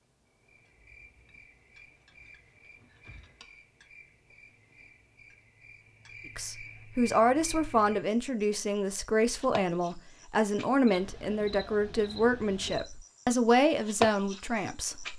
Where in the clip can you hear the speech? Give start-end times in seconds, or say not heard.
6.3-15.1.